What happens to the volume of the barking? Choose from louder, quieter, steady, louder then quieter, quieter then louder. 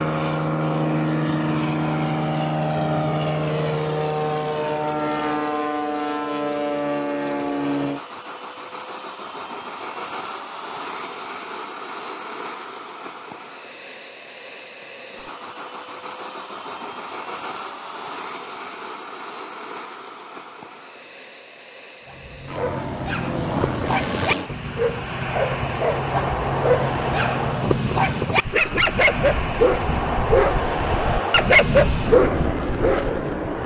louder.